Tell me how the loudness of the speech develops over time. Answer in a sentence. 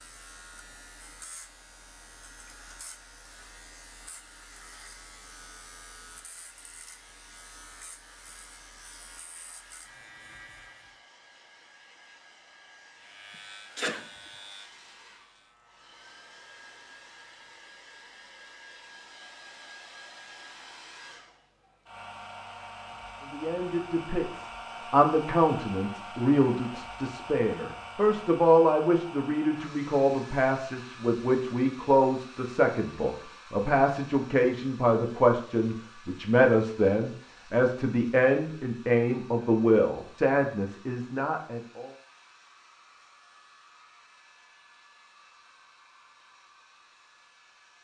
The loudness of the speech stays about the same.